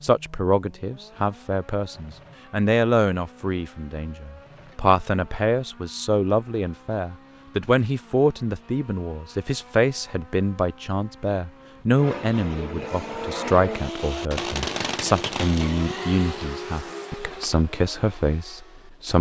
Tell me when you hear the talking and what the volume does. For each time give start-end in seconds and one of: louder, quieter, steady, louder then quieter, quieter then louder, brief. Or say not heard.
0.0-19.1 steady.